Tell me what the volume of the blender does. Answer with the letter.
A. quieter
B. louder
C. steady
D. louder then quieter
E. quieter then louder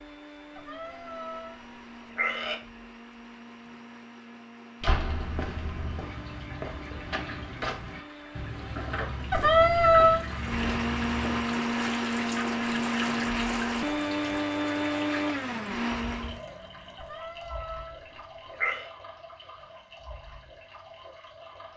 B.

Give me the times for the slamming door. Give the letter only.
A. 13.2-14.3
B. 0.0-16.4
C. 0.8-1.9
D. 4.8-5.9
D.